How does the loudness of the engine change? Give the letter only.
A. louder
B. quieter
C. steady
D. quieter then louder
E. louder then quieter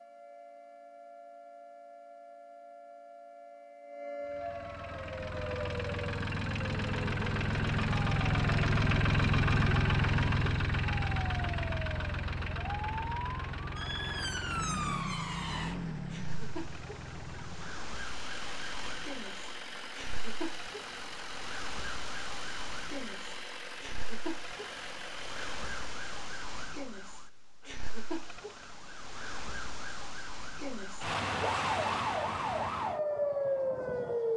B.